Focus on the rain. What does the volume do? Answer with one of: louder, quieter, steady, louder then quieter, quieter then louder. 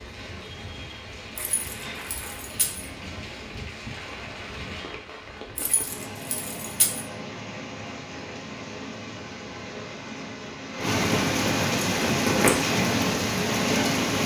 louder.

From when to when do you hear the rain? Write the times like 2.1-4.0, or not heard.
0.0-14.2.